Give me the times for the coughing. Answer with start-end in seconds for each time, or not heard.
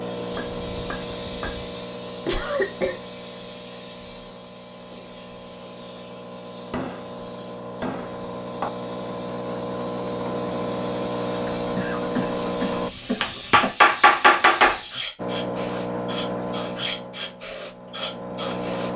2.2-3.0, 11.8-13.8.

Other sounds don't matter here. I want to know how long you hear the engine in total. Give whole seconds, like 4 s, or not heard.
17 s.